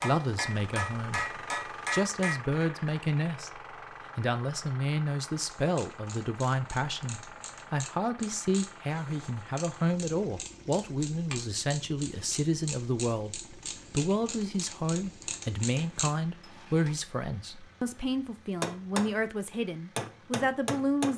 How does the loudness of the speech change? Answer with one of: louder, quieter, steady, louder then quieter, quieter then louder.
steady.